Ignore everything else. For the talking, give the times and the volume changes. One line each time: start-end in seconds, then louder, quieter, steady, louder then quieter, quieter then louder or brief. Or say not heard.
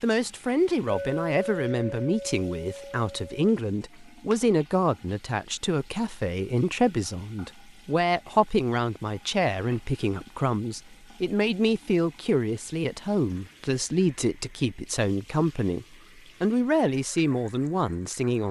0.0-18.4 steady.